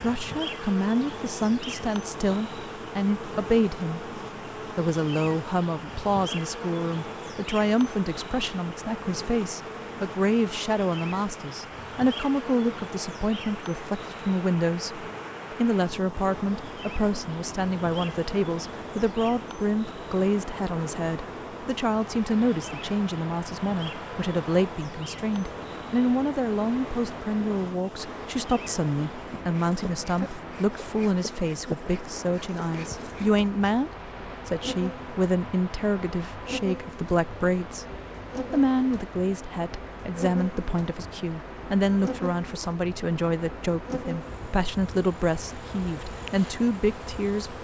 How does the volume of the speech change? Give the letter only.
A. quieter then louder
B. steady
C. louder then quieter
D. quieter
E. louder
B.